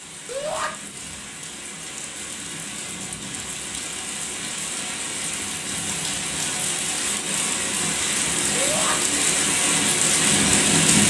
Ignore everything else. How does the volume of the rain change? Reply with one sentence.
The volume of the rain goes up.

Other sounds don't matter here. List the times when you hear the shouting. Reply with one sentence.
You can hear the shouting from 0.2 to 0.7 s and from 8.5 to 8.9 s.